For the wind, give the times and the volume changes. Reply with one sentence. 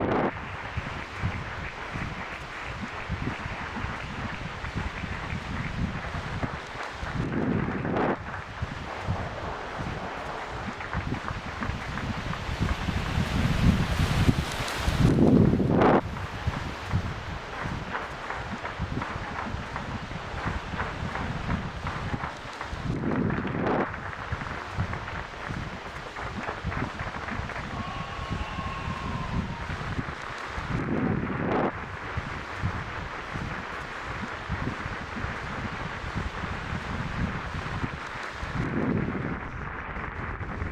The wind can be heard from 0.0 to 40.6 s, getting louder then quieter.